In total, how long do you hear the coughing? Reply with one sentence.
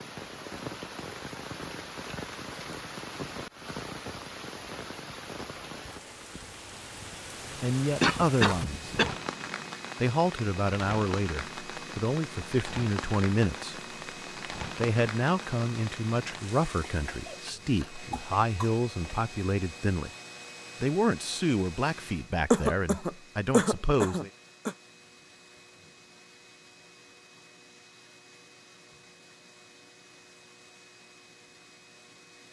The coughing can be heard for 6 seconds in total.